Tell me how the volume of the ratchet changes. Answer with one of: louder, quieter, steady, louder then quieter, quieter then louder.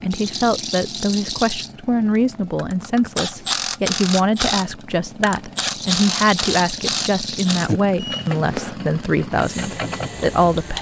quieter.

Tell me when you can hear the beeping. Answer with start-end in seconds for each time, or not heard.
8.0-8.8.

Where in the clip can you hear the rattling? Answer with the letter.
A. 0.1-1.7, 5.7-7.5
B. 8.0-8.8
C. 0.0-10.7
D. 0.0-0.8
A.